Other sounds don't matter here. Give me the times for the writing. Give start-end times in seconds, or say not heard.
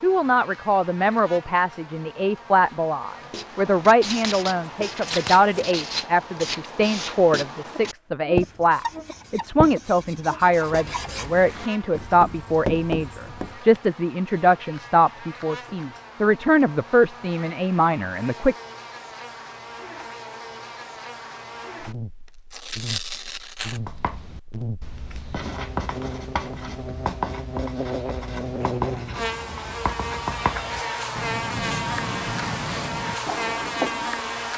3.2-13.8, 23.7-34.3.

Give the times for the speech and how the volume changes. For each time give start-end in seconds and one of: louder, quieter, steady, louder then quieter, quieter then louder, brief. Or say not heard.
0.0-18.6 steady.